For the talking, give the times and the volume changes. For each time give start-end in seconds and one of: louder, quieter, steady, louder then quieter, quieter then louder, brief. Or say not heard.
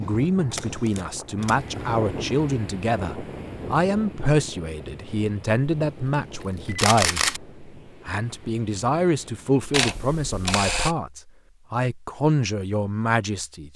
0.0-13.7 steady.